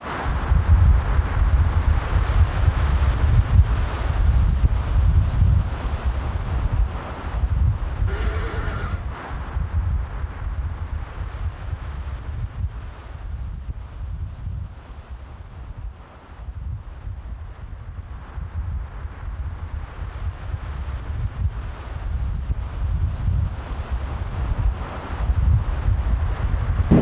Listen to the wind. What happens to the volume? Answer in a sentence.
The volume of the wind goes down, then up.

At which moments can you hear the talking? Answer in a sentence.
You can't hear the talking here.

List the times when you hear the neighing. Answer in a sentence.
The neighing can be heard from 8.1 to 9.1 s.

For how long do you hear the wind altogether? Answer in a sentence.
You can hear the wind for 27 seconds altogether.